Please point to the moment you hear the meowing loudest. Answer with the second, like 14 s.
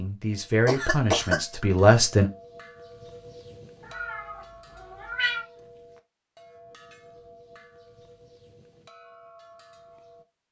5 s.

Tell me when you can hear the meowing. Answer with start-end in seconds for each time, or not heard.
3.8-5.5.